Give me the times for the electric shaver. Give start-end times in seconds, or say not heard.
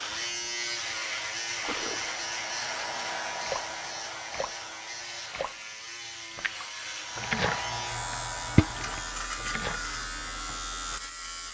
0.0-11.4.